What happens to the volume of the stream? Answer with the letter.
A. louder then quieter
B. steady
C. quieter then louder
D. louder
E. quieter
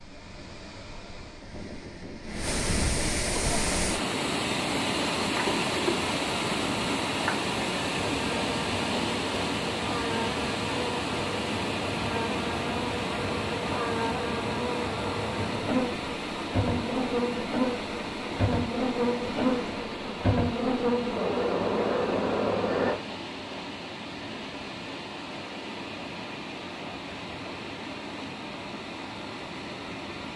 E.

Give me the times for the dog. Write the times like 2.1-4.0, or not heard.
not heard.